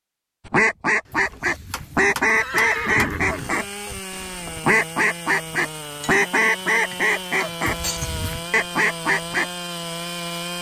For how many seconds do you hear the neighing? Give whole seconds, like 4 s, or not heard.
3 s.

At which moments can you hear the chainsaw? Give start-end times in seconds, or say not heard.
3.2-10.5.